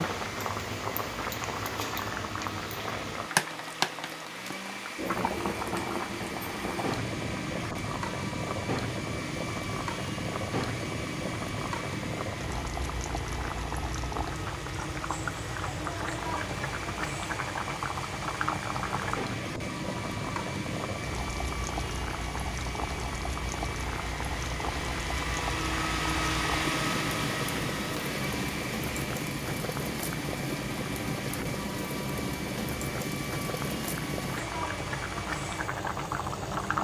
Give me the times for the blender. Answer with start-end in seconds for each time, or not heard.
0.0-36.8.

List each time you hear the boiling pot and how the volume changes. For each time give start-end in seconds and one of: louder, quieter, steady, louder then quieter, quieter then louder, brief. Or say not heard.
0.0-36.8 steady.